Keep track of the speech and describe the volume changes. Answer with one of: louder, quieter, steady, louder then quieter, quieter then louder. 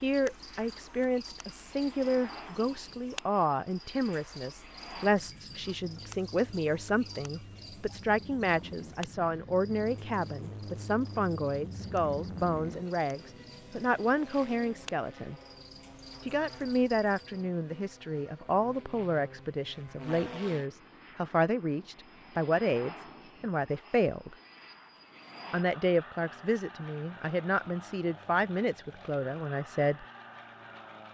steady.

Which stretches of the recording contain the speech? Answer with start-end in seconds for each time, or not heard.
0.0-15.3, 16.2-24.4, 25.5-30.1.